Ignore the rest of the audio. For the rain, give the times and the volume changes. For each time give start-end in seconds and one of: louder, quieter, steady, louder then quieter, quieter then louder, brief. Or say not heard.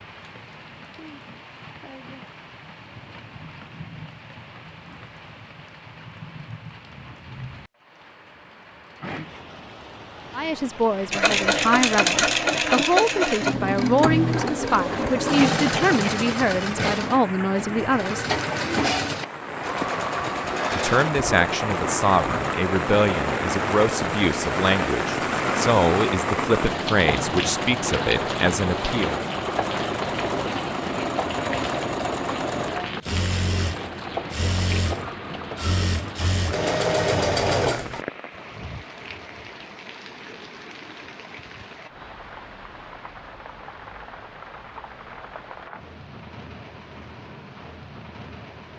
0.0-48.7 louder then quieter.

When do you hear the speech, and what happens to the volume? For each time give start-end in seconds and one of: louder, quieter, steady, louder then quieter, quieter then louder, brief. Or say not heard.
10.3-18.2 steady
20.7-29.2 steady.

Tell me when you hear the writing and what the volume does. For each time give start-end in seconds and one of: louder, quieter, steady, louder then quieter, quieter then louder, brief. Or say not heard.
not heard.